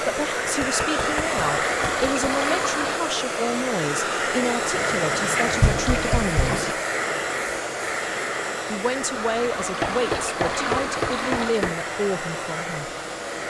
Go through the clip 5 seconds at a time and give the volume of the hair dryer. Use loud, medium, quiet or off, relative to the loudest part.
loud, loud, medium.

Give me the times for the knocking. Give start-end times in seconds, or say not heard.
0.6-2.3, 5.6-6.4, 9.8-11.8.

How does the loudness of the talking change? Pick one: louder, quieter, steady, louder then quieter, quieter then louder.
steady.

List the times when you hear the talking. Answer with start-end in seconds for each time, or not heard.
0.0-6.8, 8.7-12.9.